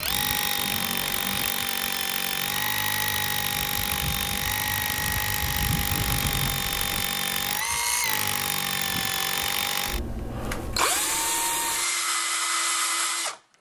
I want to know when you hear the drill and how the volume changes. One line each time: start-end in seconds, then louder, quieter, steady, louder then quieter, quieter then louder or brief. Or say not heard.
0.0-13.5 steady.